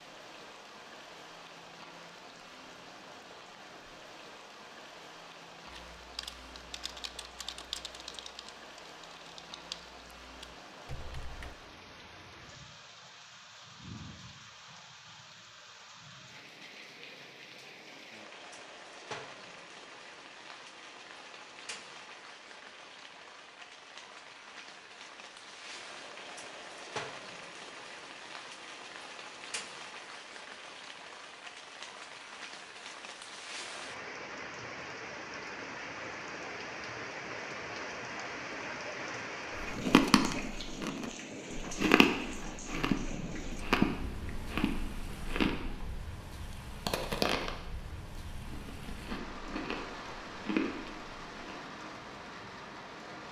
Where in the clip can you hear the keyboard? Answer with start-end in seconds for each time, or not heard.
5.7-11.6.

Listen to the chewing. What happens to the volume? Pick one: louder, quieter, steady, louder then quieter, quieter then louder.
quieter.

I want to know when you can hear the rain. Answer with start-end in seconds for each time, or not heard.
0.0-53.2.